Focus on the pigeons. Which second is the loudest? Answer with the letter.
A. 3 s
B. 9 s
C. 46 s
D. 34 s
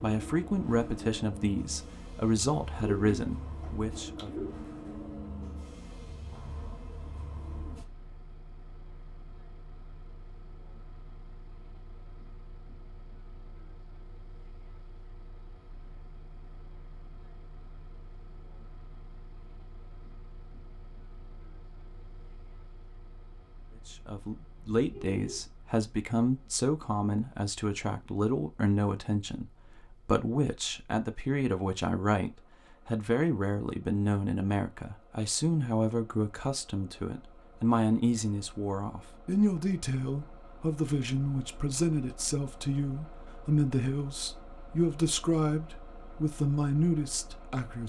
A.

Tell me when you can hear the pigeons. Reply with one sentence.
The pigeons can be heard from 2.8 to 4.5 s.